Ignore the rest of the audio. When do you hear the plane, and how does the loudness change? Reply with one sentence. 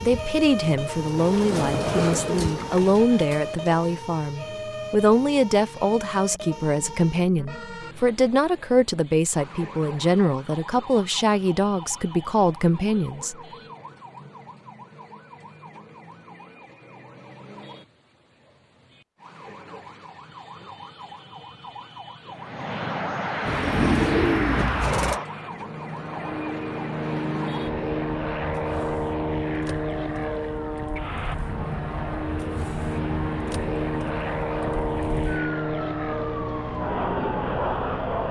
The plane can be heard from 22.3 to 38.2 s, at a steady volume.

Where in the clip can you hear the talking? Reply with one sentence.
You can hear the talking from 0.0 to 13.3 s.